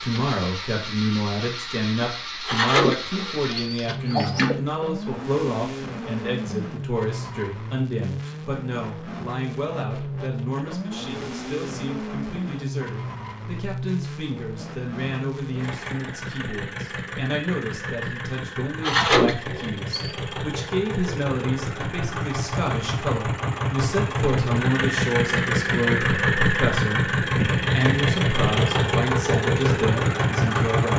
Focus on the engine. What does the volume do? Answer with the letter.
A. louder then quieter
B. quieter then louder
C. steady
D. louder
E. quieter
D.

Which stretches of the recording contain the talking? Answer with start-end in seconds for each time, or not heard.
0.0-30.9.